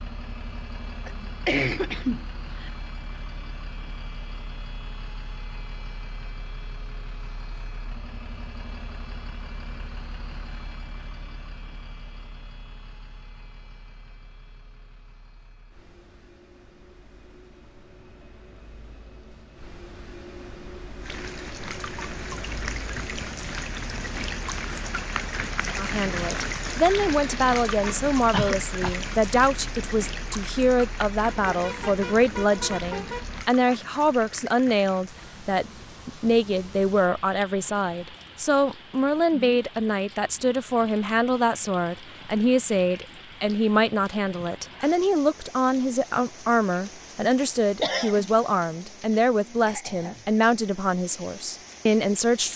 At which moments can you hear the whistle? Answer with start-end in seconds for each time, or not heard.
not heard.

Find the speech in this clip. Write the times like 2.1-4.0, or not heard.
25.8-52.5.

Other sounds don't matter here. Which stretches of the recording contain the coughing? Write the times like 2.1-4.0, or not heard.
1.1-2.7, 28.3-29.0, 47.8-48.3.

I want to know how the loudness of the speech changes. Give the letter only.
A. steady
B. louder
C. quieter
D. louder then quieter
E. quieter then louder
A.